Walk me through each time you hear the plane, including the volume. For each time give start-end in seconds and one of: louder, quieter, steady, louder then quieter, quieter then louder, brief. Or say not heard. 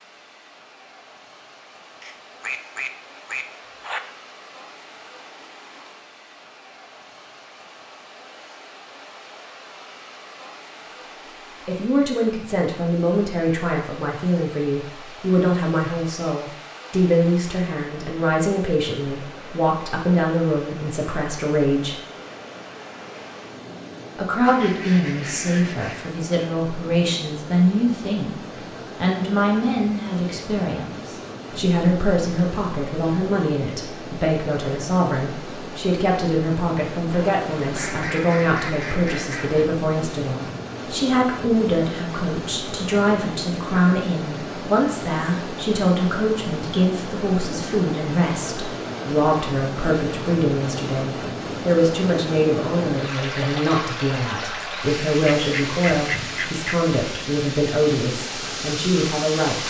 not heard.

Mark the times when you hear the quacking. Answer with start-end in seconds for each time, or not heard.
2.0-4.0, 24.4-26.1, 37.1-39.7, 55.2-56.9.